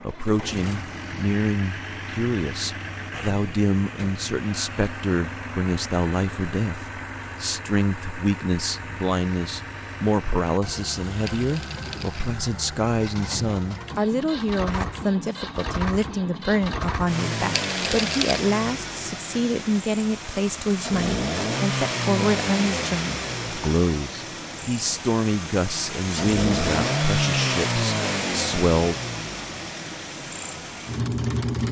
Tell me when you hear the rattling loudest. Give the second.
18 s.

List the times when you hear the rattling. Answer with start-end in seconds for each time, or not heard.
11.2-12.3, 17.5-18.4.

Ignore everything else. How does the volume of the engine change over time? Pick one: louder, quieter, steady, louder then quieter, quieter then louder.
louder.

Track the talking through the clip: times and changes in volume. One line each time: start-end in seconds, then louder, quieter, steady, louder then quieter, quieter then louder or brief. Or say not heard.
0.0-28.9 steady.